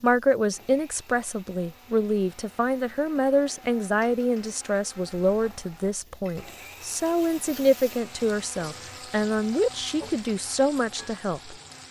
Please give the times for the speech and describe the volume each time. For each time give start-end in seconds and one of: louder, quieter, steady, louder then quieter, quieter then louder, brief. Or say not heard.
0.0-11.6 steady.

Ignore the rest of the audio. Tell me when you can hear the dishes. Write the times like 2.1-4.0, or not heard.
not heard.